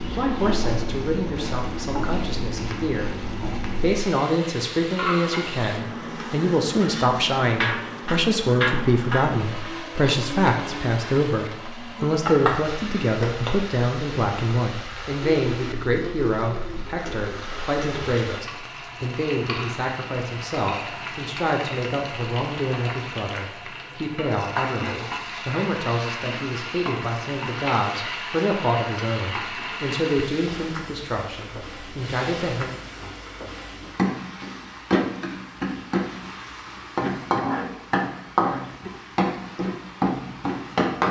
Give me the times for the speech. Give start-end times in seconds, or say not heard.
0.0-32.7.